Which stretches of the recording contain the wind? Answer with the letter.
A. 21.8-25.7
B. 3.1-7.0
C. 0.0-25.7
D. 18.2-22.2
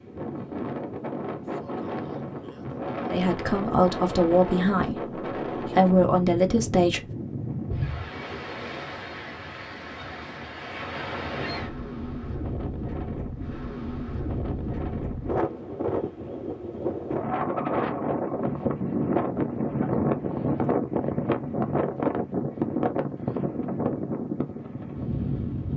C.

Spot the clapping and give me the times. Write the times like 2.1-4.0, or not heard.
not heard.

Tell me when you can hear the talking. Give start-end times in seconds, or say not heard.
3.1-7.0.